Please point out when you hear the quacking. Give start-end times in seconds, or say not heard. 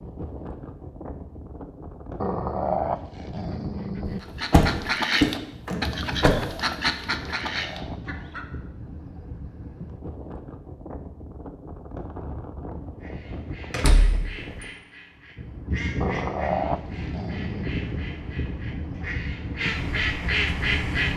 4.2-8.4, 13.0-21.1.